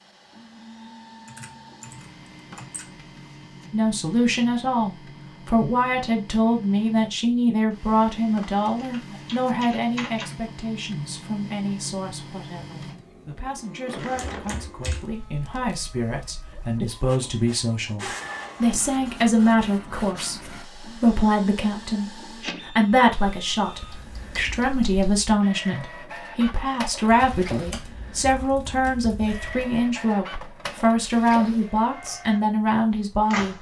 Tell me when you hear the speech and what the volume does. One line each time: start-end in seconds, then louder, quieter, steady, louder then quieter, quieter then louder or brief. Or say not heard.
3.7-33.5 quieter then louder.